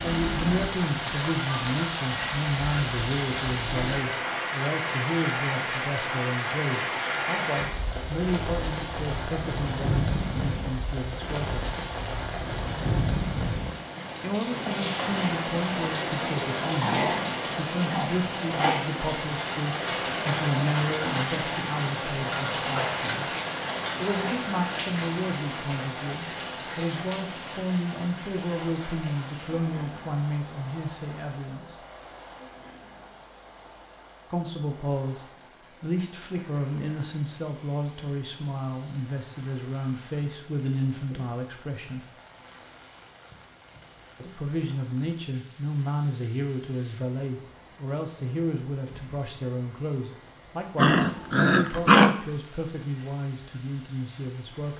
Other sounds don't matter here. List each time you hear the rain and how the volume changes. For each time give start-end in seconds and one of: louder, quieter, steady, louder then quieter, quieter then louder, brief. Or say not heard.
0.0-54.7 quieter.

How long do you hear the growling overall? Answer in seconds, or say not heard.
3 s.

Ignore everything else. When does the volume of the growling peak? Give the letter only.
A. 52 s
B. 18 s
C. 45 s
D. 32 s
A.